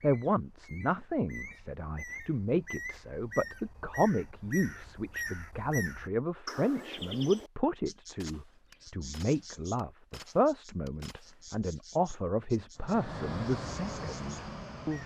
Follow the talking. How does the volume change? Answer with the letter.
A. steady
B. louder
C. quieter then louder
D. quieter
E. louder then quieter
A.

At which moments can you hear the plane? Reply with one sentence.
You can hear the plane from 12.8 to 15.0 s.